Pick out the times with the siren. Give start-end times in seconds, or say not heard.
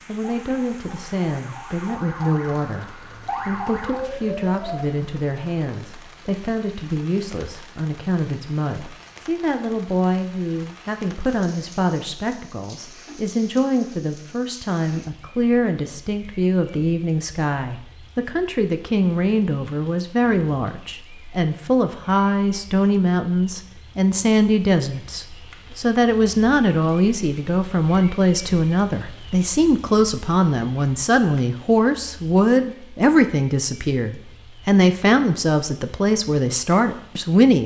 0.2-4.9.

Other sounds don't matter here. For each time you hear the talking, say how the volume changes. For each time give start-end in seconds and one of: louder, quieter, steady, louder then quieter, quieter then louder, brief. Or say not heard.
0.1-37.6 louder.